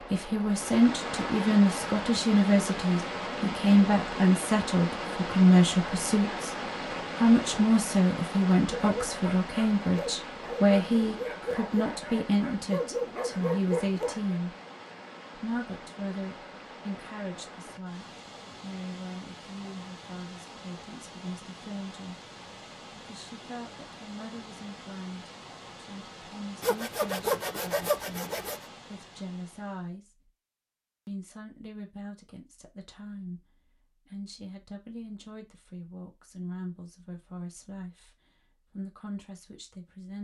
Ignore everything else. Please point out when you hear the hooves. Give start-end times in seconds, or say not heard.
not heard.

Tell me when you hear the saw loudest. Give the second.
27 s.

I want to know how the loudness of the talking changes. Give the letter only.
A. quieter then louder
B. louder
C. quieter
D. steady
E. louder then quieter
C.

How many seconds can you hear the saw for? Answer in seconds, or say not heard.
2 s.